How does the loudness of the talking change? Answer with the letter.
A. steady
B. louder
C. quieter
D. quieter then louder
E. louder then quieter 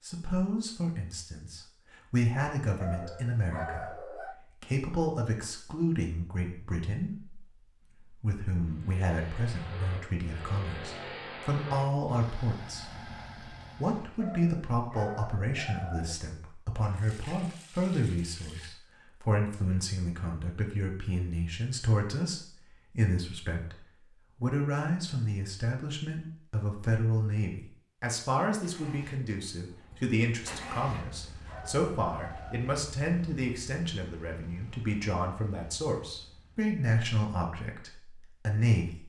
A.